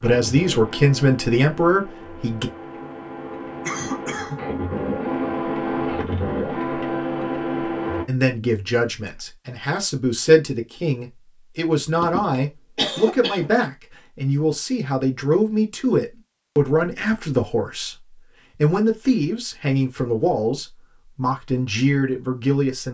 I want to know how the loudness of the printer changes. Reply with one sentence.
The loudness of the printer goes up.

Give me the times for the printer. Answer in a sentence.
The printer can be heard from 0.0 to 8.1 s.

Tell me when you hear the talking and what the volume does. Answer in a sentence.
The talking can be heard briefly from 0.0 to 2.5 s; and from 8.1 to 22.9 s, at a steady volume.